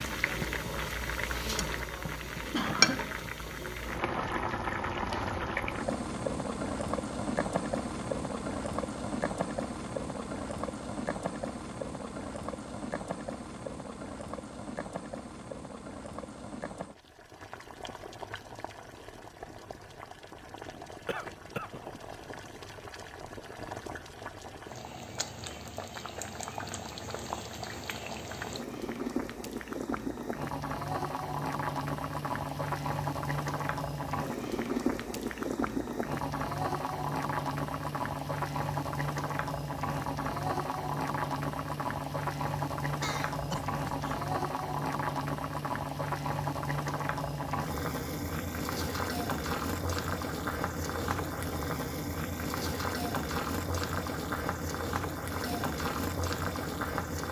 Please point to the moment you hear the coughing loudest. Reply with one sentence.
The loudest moment of the coughing is at 3 seconds.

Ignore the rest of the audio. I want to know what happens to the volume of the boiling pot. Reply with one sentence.
The loudness of the boiling pot goes down, then up.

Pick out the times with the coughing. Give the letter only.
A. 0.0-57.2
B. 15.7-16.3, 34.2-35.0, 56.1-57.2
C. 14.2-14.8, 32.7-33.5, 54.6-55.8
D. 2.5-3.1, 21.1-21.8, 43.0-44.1
D.